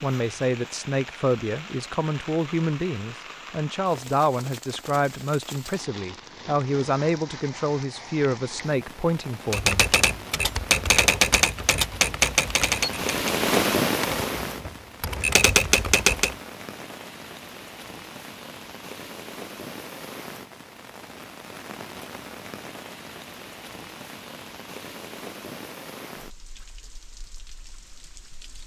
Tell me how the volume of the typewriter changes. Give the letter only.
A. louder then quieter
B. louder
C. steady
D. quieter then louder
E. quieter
D.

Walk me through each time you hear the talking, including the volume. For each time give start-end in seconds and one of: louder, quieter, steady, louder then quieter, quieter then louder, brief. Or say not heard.
0.0-9.8 steady.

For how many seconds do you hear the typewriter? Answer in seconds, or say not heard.
7 s.